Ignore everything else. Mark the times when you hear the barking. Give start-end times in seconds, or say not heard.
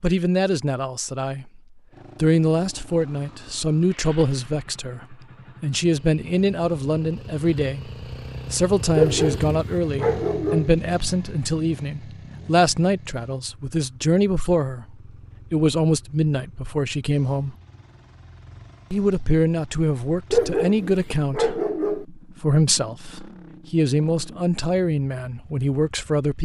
8.9-10.7, 20.3-22.1.